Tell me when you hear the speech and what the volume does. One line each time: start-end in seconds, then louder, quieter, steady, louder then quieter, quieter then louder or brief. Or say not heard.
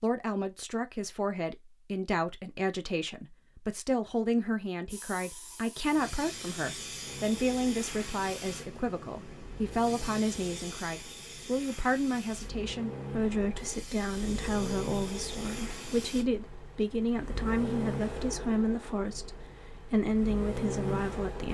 0.0-21.4 steady.